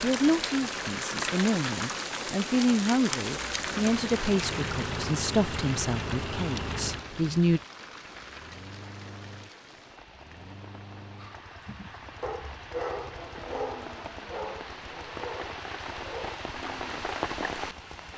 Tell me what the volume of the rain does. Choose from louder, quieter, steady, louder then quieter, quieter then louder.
quieter then louder.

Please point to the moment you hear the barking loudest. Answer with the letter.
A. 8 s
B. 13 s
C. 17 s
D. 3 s
B.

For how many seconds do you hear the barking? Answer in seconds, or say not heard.
5 s.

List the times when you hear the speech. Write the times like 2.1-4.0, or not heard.
0.0-7.6.